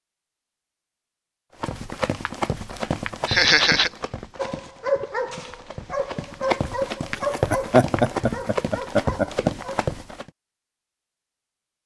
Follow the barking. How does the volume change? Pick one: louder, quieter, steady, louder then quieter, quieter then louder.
quieter.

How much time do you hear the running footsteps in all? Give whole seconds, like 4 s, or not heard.
9 s.